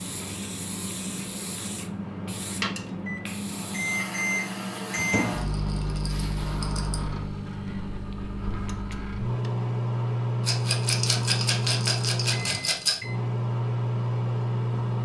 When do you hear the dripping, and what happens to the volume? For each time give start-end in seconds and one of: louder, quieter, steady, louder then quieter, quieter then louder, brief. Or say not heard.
not heard.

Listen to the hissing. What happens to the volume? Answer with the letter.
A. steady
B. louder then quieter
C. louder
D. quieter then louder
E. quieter
E.